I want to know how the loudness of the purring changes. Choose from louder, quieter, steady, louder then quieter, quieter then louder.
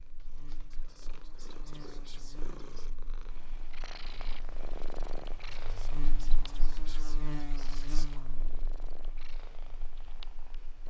louder then quieter.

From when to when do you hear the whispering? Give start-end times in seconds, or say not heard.
0.7-2.9, 5.6-8.3.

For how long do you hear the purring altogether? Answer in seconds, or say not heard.
11 s.